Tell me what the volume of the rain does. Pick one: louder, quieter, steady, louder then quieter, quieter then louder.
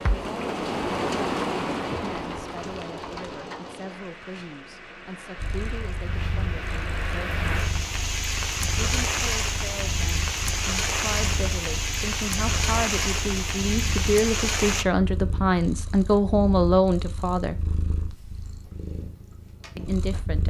quieter then louder.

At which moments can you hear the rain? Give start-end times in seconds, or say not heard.
0.0-14.8.